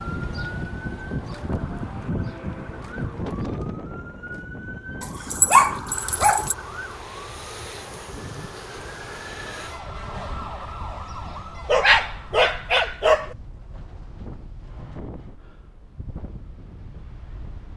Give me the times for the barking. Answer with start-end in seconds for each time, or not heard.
5.0-6.5, 11.7-13.3.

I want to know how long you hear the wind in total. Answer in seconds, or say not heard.
18 s.